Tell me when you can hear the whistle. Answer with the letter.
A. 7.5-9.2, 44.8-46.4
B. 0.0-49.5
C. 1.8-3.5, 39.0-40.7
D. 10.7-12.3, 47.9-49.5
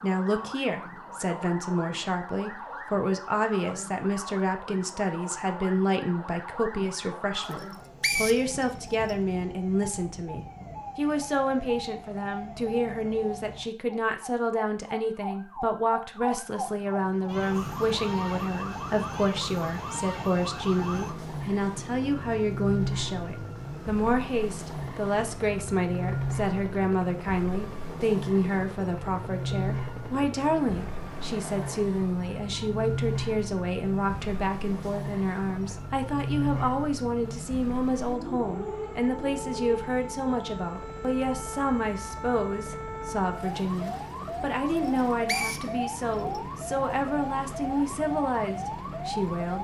A.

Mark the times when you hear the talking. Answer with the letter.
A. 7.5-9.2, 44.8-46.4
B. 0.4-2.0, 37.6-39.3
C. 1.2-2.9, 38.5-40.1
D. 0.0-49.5
D.